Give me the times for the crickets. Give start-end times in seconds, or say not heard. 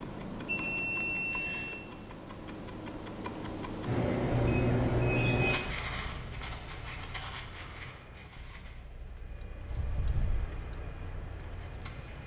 3.8-12.2.